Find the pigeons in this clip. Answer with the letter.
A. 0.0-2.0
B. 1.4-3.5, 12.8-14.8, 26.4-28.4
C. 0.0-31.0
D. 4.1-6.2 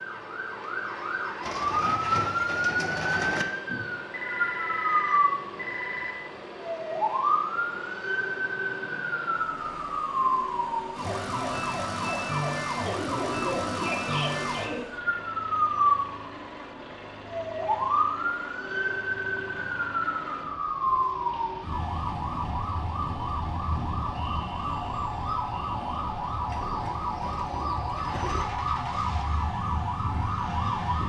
B.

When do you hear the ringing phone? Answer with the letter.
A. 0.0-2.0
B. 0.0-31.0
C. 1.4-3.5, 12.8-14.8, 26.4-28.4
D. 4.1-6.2
D.